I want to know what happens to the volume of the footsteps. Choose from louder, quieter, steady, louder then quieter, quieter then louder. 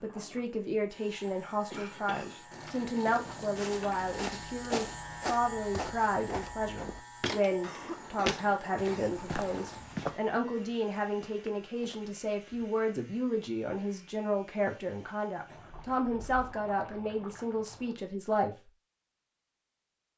louder then quieter.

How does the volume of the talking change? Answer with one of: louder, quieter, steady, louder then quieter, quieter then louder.
steady.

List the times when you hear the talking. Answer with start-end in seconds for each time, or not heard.
0.0-18.6.